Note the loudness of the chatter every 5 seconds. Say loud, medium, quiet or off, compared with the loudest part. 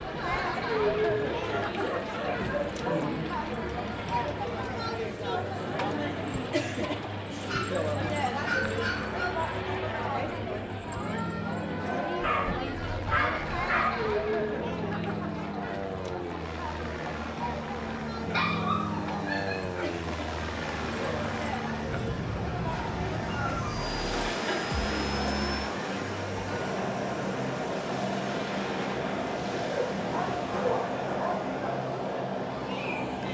loud, loud, loud, medium, medium, medium, medium.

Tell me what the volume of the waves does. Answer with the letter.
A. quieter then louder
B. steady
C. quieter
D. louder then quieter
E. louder
D.